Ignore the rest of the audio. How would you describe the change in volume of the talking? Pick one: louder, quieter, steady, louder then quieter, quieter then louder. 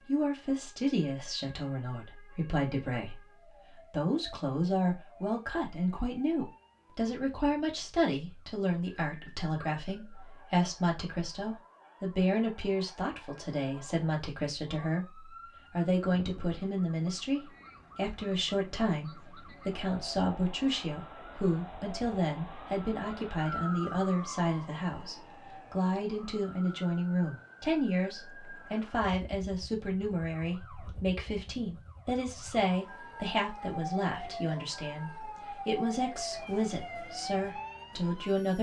steady.